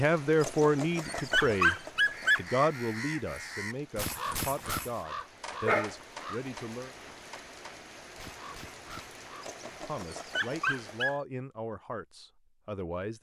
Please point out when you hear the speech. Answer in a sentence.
The speech can be heard from 0.0 to 1.8 s, from 2.4 to 7.0 s and from 9.6 to 13.1 s.